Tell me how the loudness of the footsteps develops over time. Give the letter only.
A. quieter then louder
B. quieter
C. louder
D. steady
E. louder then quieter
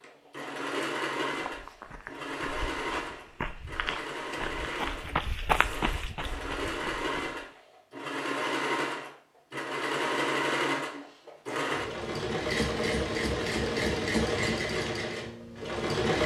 E.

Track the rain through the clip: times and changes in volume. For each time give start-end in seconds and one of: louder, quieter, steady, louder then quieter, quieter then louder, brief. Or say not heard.
not heard.